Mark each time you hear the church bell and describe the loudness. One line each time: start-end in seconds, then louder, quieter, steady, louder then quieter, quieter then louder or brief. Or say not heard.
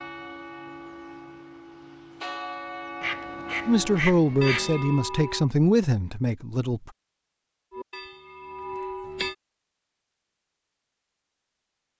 0.0-5.5 louder
7.7-9.3 brief.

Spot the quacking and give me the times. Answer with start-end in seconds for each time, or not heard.
3.0-4.7.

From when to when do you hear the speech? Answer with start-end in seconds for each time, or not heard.
3.6-6.9.